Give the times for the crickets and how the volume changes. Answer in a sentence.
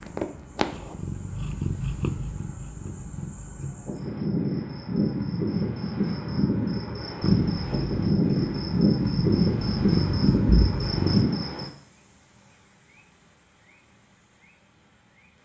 The crickets can be heard from 0.0 to 15.4 s, getting louder then quieter.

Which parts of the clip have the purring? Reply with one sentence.
You can hear the purring from 0.0 to 4.0 s and from 7.2 to 11.2 s.